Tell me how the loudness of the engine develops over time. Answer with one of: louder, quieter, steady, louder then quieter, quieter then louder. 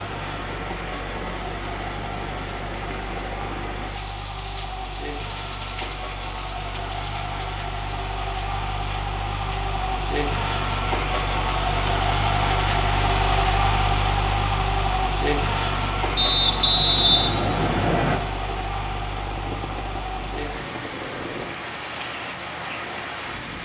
louder then quieter.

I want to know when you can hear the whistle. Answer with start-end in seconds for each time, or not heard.
16.1-18.2.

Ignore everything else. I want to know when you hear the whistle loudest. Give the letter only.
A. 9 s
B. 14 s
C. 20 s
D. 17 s
D.